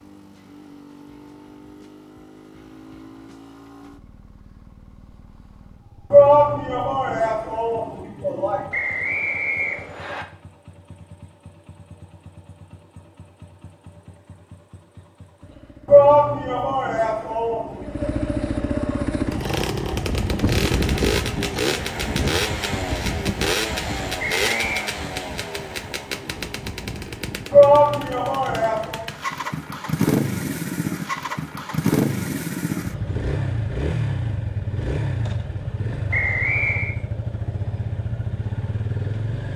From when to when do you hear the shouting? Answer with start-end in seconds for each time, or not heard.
6.1-8.7, 15.8-18.1, 27.5-29.1.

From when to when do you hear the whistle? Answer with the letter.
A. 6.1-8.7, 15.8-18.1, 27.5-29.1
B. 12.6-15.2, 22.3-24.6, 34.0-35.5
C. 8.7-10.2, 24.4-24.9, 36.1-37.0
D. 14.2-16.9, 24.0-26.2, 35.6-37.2
C.